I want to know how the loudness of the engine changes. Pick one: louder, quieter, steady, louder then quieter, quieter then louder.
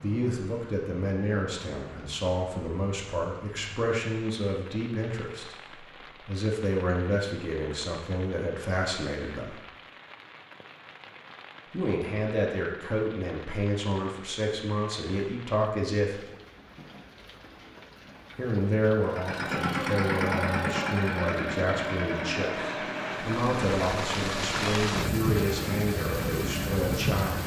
quieter.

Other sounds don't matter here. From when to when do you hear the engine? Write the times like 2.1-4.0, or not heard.
19.0-27.4.